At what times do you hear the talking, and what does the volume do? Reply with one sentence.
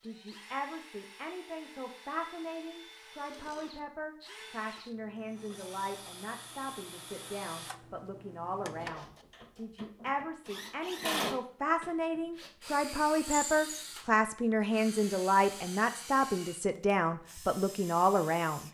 The talking can be heard from 0.0 to 18.7 s, getting louder.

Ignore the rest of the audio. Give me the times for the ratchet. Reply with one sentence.
You can't hear the ratchet here.